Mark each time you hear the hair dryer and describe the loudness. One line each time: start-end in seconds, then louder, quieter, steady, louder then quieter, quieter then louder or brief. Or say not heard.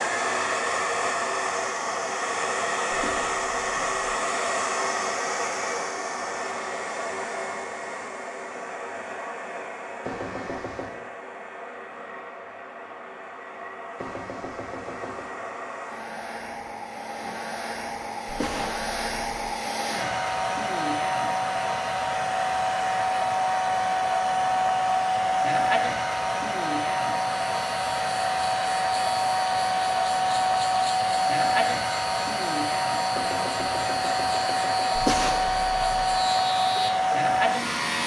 0.0-38.0 quieter then louder.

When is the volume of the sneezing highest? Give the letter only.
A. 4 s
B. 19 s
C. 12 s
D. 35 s
D.